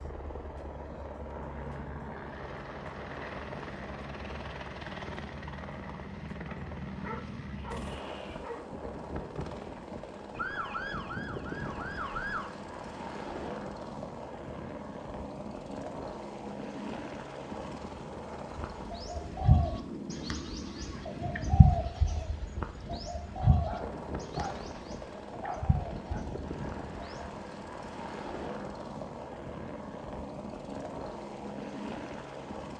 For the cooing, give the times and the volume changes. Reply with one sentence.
You can hear the cooing from 18.6 to 27.4 s, getting quieter then louder.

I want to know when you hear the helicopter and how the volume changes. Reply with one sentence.
You can hear the helicopter from 0.0 to 32.7 s, at a steady volume.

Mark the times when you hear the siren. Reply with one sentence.
You can hear the siren from 10.3 to 12.5 s.